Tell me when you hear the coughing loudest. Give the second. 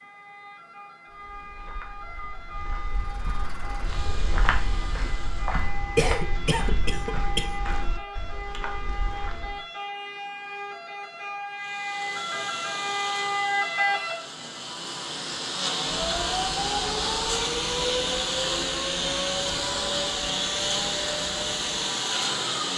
6 s.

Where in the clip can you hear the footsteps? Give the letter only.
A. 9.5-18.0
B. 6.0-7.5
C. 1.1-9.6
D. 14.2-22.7
C.